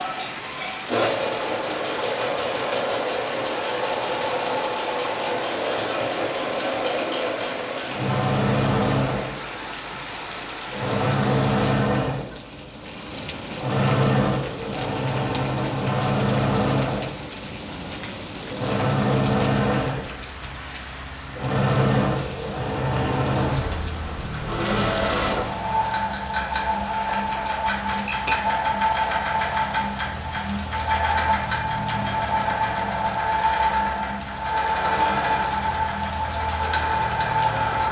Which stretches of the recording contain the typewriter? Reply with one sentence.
The typewriter can be heard from 27.9 to 28.4 s.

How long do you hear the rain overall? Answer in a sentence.
The rain can be heard for 38 seconds in total.